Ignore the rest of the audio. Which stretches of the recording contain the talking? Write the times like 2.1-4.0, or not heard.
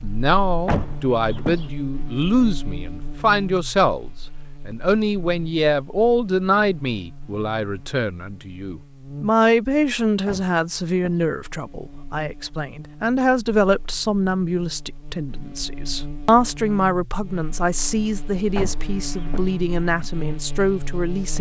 0.0-21.3.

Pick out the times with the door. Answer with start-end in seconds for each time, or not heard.
0.7-1.7, 10.2-11.2, 18.6-19.6.